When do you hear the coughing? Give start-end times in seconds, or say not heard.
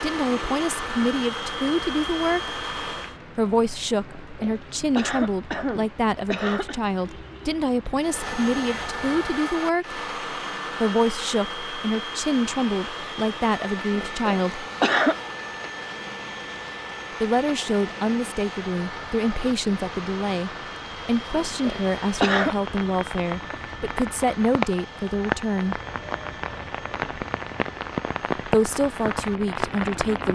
4.0-6.8, 13.9-15.2, 21.3-22.6.